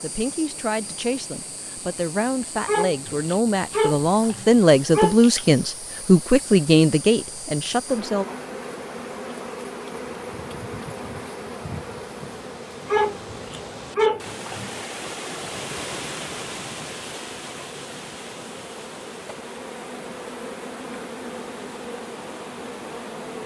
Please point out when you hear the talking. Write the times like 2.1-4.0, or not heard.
0.0-8.2.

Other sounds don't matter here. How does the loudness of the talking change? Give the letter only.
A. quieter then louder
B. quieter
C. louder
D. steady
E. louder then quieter
C.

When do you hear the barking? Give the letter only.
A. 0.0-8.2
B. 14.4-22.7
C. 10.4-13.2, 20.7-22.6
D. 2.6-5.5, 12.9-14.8
D.